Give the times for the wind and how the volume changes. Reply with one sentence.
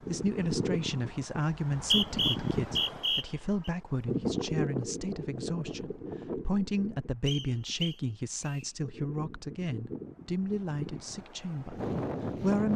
You can hear the wind from 0.0 to 12.7 s, getting quieter then louder.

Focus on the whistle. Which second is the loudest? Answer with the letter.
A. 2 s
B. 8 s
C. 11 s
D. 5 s
A.